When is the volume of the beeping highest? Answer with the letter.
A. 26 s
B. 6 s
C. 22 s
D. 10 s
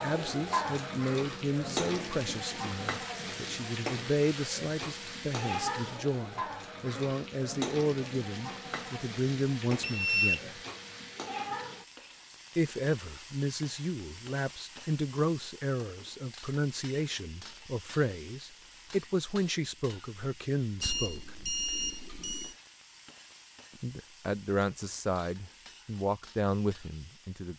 D.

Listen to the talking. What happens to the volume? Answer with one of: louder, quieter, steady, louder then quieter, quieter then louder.
steady.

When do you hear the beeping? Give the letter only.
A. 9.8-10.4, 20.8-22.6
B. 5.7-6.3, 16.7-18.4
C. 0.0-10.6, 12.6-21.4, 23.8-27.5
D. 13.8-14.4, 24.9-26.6
A.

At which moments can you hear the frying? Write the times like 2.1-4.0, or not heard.
0.0-27.5.